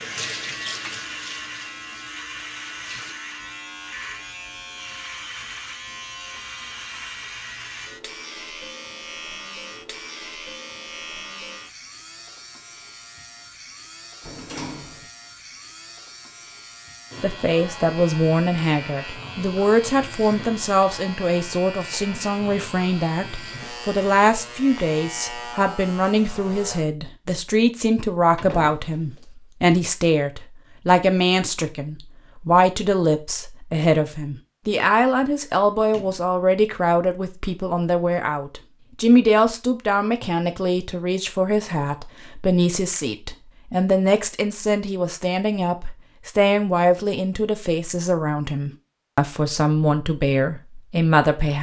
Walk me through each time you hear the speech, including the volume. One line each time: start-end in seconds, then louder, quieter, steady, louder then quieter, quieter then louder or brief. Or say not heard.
17.2-51.5 steady.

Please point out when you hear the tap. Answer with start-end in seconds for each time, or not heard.
0.0-3.1.